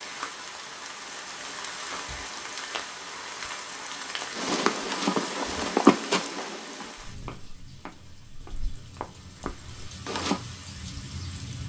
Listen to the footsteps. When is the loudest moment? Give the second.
6 s.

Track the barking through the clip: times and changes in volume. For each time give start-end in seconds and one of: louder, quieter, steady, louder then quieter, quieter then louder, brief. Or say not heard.
not heard.